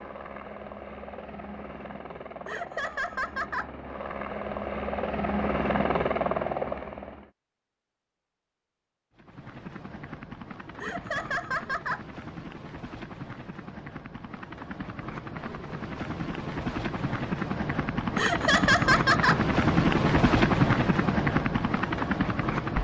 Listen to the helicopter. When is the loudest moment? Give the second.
20 s.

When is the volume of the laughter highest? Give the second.
19 s.